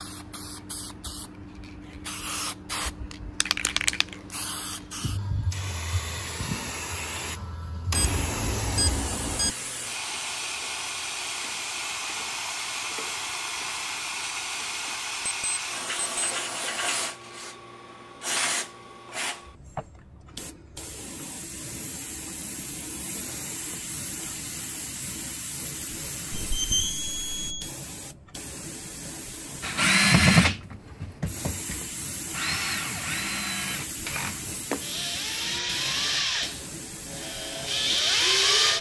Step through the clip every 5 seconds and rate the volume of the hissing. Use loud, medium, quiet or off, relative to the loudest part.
loud, loud, loud, loud, medium, medium, medium, medium.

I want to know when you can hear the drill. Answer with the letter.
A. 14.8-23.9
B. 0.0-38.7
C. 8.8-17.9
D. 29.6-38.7
D.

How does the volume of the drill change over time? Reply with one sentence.
The loudness of the drill goes down, then up.